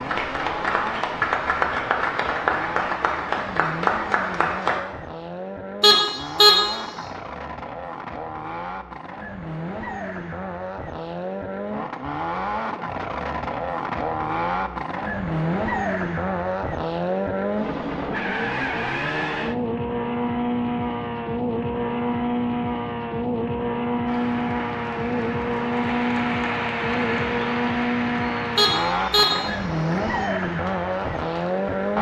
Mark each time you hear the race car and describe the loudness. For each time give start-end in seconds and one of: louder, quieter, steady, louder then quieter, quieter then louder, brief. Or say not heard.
0.0-31.9 louder.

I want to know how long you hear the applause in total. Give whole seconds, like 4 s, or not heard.
13 s.